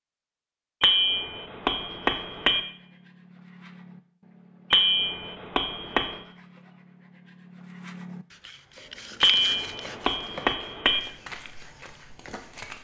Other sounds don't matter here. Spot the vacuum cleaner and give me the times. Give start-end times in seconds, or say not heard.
not heard.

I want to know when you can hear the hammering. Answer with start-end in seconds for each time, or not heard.
0.8-2.6, 4.7-6.2, 9.2-11.0.